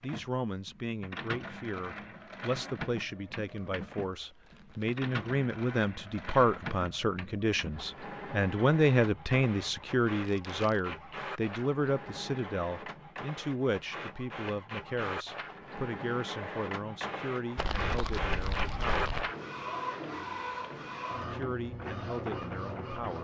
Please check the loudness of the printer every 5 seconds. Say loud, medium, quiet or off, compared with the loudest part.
medium, medium, medium, loud, loud.